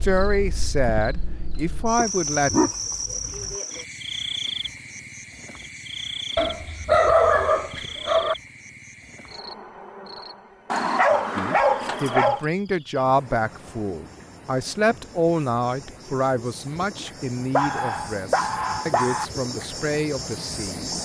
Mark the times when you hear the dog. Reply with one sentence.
You can hear the dog from 1.9 to 3.5 s, from 6.3 to 8.3 s, from 10.7 to 12.4 s and from 17.5 to 19.2 s.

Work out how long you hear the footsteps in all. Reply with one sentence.
You can't hear the footsteps here.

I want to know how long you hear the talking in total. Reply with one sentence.
You can hear the talking for 12 seconds altogether.